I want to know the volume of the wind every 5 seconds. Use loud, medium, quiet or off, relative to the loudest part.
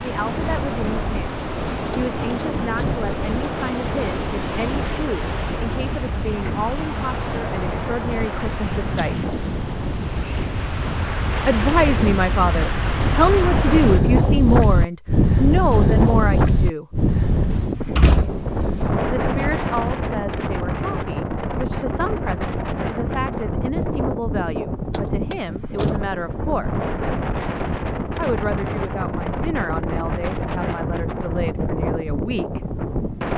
medium, medium, loud, loud, medium, medium, medium.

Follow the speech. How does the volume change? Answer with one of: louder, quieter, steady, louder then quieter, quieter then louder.
louder then quieter.